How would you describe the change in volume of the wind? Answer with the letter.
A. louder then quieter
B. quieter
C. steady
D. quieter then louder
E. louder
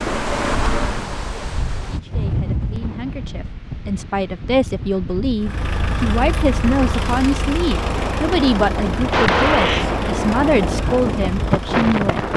D.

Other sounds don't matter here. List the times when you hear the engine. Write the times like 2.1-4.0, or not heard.
5.4-12.3.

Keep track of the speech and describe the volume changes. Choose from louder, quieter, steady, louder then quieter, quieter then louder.
louder.